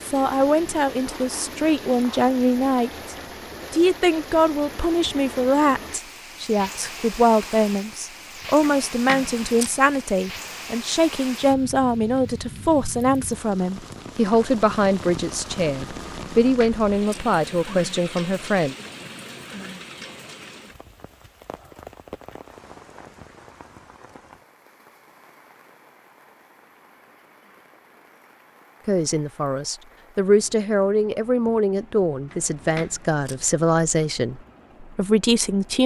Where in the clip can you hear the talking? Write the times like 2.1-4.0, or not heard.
0.0-18.8, 28.9-35.8.